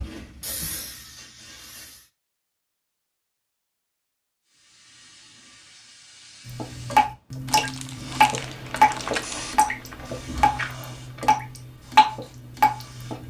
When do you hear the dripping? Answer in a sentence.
The dripping can be heard from 6.5 to 13.2 s.